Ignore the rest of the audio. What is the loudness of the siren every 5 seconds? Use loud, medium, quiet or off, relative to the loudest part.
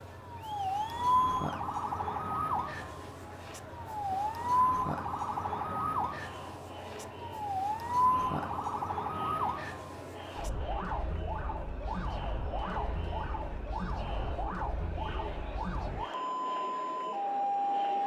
loud, loud, medium, loud.